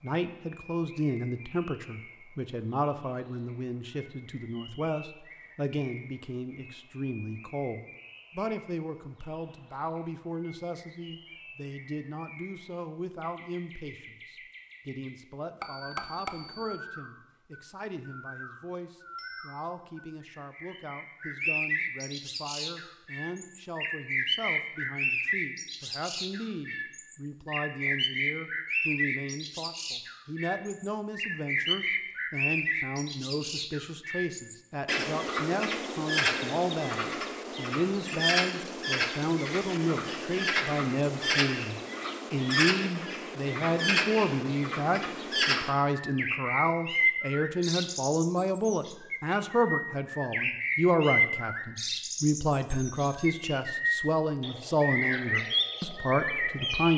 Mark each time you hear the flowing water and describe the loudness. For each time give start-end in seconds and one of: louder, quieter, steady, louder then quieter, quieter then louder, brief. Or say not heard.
not heard.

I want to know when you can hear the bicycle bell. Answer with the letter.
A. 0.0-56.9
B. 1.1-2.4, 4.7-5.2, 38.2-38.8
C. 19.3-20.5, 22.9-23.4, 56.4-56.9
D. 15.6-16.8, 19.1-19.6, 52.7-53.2
D.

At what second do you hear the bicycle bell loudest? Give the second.
16 s.